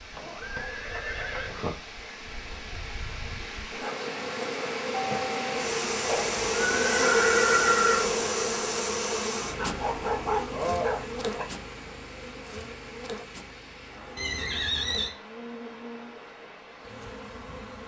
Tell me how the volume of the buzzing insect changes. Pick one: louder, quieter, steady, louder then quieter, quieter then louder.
louder then quieter.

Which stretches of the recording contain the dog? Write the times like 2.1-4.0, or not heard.
9.6-11.4.